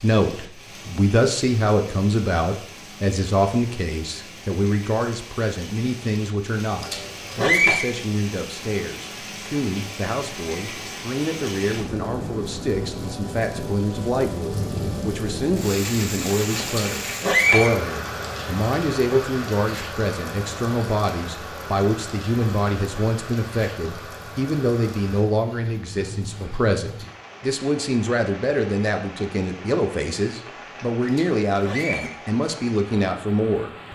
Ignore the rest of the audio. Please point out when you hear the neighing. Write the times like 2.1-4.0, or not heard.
6.8-7.8, 16.6-17.7, 31.1-32.1.